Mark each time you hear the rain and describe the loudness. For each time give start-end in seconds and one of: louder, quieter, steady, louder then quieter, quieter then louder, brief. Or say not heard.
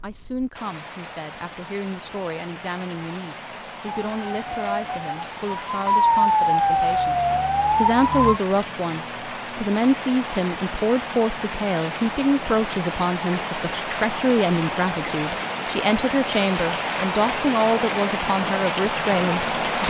0.0-19.8 louder.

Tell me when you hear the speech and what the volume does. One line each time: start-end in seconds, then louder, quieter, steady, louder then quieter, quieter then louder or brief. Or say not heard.
0.0-19.8 louder.